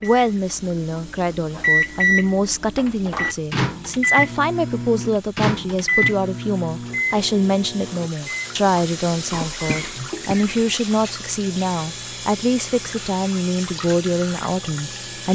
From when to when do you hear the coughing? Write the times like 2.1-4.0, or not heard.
9.3-10.6.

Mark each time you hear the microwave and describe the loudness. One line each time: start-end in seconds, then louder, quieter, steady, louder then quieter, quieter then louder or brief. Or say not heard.
0.0-15.3 quieter.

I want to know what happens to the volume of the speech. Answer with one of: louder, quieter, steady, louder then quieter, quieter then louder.
steady.